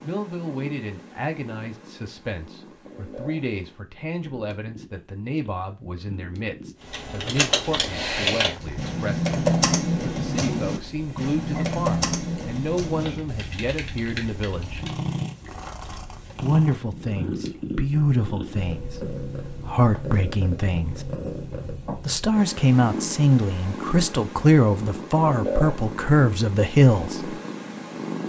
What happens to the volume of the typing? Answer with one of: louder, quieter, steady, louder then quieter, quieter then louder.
quieter.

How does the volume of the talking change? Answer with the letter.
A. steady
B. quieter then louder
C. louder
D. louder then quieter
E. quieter
C.